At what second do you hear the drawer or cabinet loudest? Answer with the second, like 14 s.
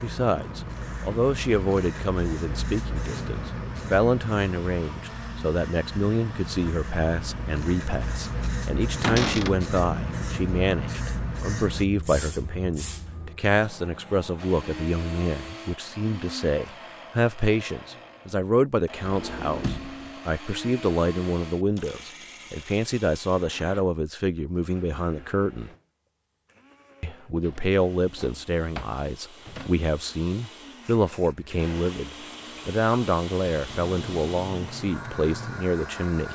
9 s.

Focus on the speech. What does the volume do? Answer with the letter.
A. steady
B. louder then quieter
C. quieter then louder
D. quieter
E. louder
A.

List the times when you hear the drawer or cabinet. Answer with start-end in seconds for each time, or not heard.
9.0-9.6, 19.0-20.1, 27.4-29.8.